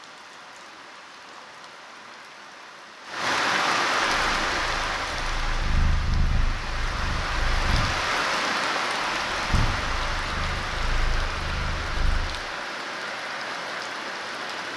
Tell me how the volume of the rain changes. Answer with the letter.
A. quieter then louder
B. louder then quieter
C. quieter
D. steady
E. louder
B.